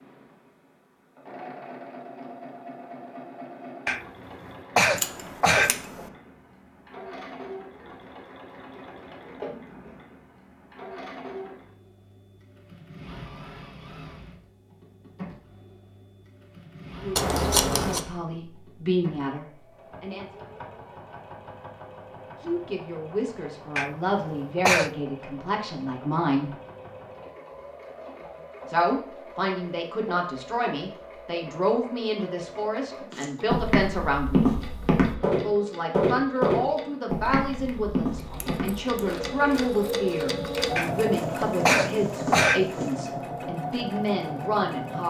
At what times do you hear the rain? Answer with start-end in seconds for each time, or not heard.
not heard.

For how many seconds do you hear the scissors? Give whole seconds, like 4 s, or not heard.
4 s.